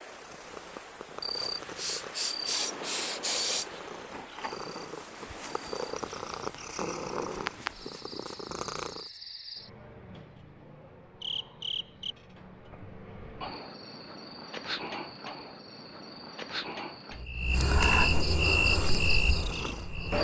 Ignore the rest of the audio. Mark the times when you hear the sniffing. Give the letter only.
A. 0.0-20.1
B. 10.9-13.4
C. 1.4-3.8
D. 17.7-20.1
C.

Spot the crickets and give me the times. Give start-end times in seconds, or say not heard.
0.0-20.1.